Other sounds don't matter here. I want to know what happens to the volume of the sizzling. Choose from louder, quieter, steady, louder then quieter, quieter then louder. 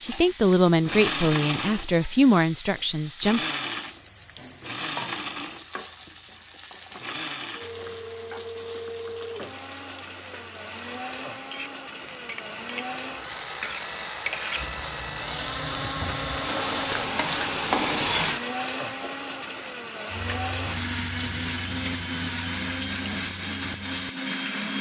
louder then quieter.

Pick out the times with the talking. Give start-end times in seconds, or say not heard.
0.0-3.4.